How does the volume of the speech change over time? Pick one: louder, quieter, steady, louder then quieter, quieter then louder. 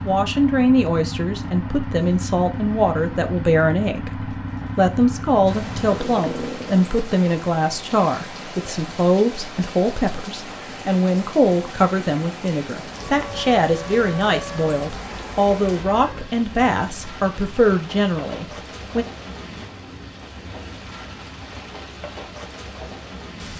steady.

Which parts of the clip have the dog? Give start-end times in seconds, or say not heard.
not heard.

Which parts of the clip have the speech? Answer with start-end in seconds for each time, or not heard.
0.1-19.1.